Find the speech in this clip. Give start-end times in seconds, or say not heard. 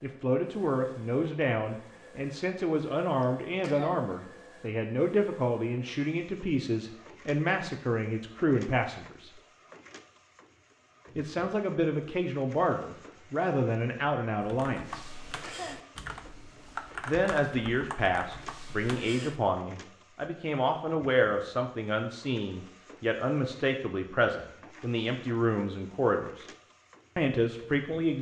0.0-9.3, 11.2-15.0, 17.1-26.4, 27.1-28.1.